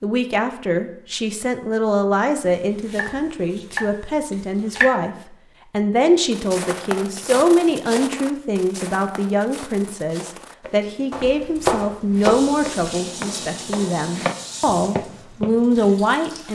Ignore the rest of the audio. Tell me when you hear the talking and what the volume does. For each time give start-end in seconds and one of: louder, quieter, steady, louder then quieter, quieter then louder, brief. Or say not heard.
0.0-16.4 steady.